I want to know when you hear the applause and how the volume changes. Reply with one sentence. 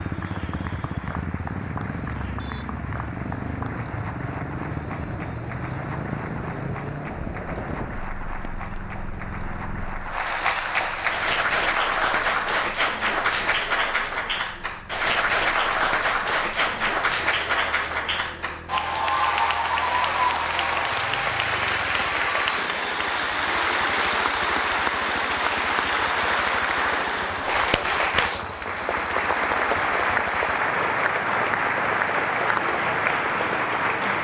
The applause can be heard from 0.0 to 34.1 s, getting louder.